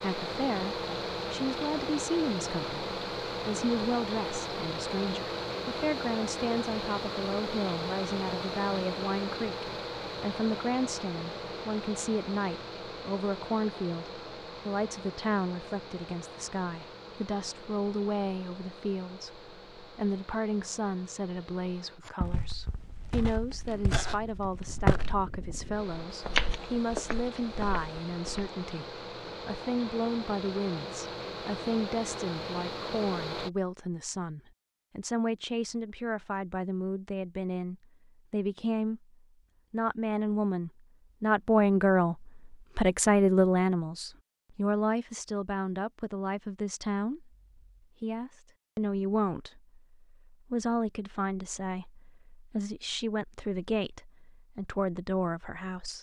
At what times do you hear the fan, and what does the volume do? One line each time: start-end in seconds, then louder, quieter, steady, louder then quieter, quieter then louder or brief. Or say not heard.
0.0-33.5 quieter then louder.